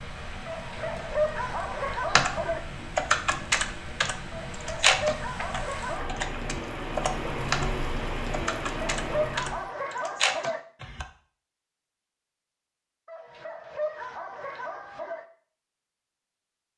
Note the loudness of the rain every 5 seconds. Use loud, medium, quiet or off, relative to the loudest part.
medium, loud, off, off.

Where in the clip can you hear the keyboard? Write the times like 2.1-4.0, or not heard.
2.1-7.7, 8.3-11.1.